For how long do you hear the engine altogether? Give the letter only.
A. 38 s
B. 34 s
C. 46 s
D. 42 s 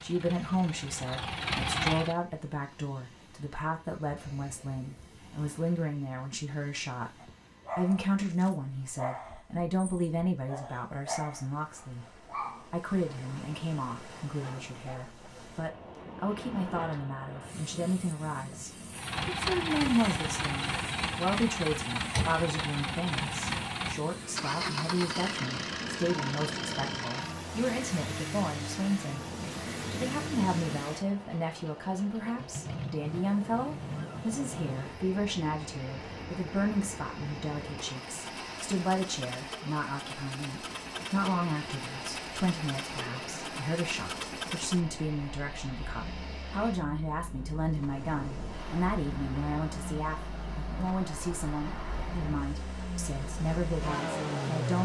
A.